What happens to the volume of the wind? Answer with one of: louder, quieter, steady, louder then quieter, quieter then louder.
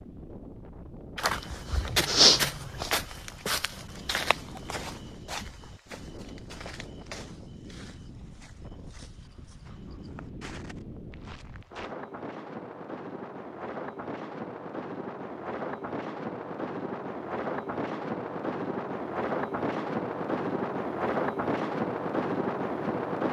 louder.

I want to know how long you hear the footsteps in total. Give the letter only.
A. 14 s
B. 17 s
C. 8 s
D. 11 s
D.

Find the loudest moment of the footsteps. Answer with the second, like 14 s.
2 s.